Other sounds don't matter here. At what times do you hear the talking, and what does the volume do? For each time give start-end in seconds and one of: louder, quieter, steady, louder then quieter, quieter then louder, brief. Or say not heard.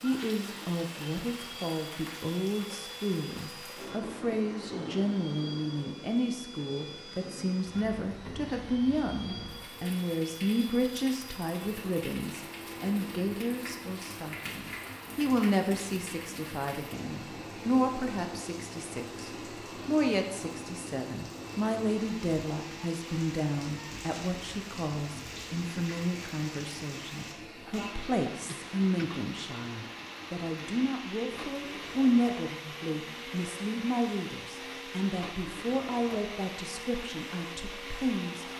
0.0-38.5 steady.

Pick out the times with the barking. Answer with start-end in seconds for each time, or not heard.
not heard.